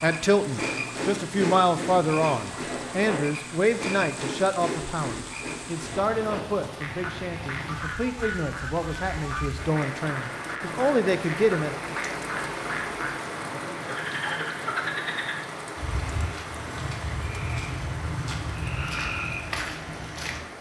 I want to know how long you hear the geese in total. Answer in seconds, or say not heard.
2 s.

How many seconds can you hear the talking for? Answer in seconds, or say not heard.
12 s.